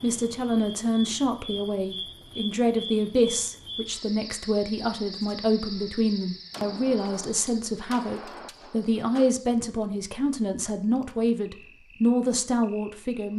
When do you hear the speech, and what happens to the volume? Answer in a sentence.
You can hear the speech from 0.0 to 13.3 s, at a steady volume.